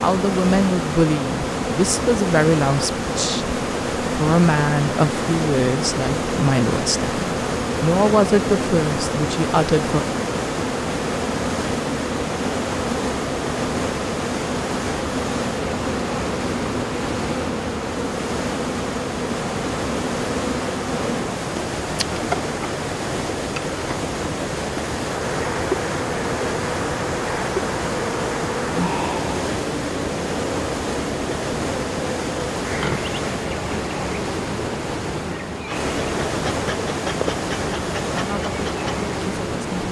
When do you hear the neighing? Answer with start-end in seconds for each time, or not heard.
not heard.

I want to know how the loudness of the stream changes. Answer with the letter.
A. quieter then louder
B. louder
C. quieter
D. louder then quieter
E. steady
E.